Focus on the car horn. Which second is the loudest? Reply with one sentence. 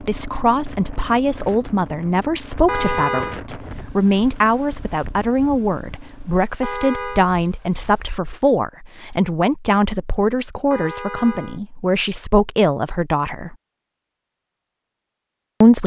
The volume of the car horn peaks at 3 seconds.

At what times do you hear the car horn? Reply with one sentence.
The car horn can be heard from 2.6 to 3.4 s, from 6.6 to 7.3 s and from 10.7 to 11.6 s.